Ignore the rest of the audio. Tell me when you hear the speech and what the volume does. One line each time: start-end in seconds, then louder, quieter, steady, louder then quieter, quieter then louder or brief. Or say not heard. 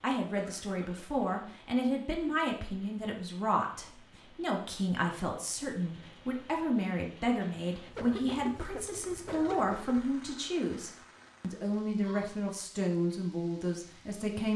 0.0-14.5 steady.